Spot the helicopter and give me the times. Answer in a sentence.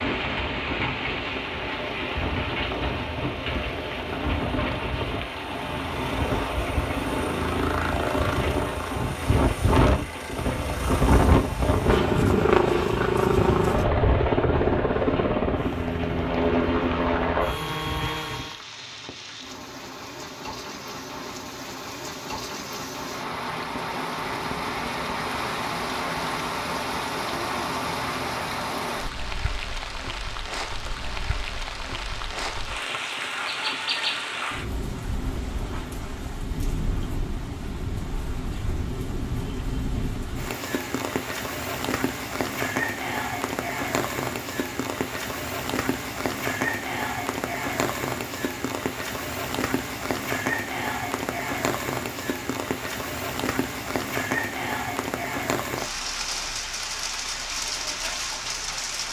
The helicopter can be heard from 0.0 to 18.6 s.